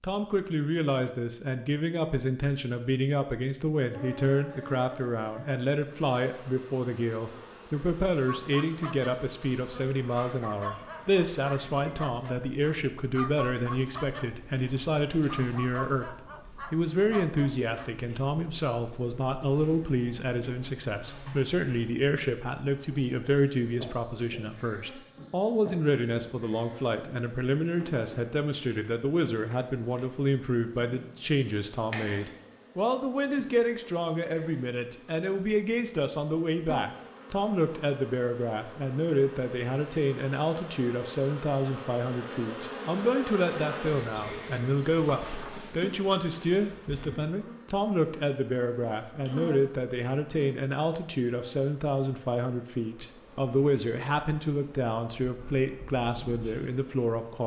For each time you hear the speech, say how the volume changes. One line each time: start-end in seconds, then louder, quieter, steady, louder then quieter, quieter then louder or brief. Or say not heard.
0.0-57.4 steady.